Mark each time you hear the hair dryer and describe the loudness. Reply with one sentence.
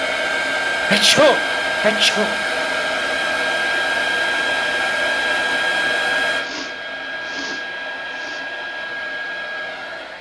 The hair dryer can be heard from 0.0 to 10.1 s, getting quieter.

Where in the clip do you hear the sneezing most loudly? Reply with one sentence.
The loudest moment of the sneezing is at 1 second.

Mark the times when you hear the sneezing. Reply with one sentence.
The sneezing can be heard from 0.8 to 2.4 s and from 5.8 to 8.4 s.